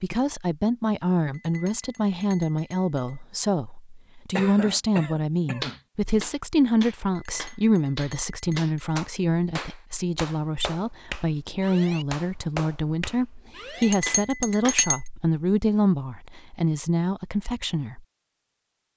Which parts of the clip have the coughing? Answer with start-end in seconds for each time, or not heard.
4.3-5.8.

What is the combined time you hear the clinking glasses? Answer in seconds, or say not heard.
5 s.